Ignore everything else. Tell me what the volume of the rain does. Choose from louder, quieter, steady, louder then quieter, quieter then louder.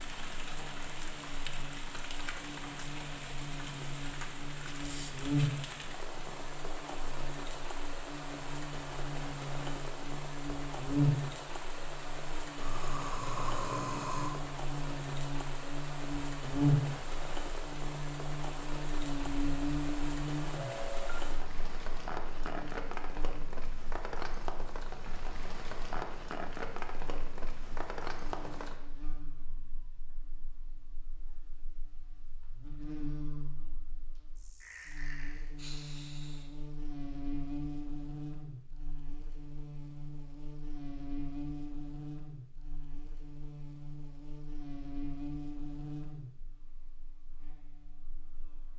steady.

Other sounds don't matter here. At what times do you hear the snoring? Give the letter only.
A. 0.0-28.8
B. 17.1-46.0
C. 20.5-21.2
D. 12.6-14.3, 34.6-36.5
D.